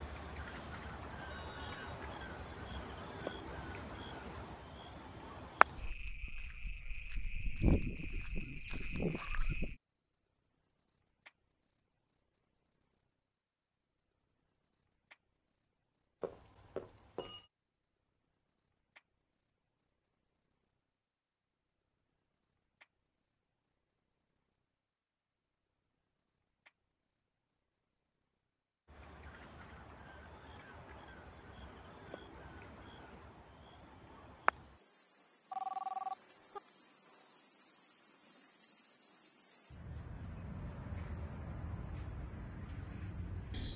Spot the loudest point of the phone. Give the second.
36 s.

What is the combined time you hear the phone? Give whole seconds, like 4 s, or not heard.
3 s.